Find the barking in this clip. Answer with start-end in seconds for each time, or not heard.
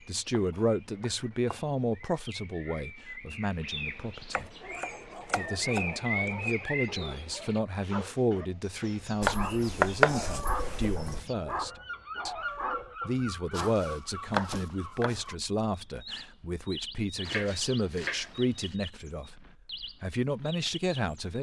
4.3-13.8.